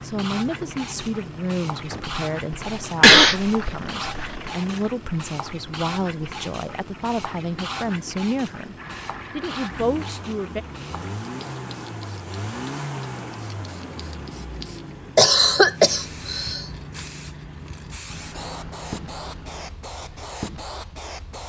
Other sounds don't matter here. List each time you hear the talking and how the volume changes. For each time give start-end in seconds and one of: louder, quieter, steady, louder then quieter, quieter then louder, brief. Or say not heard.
0.0-8.8 steady
9.3-10.7 brief.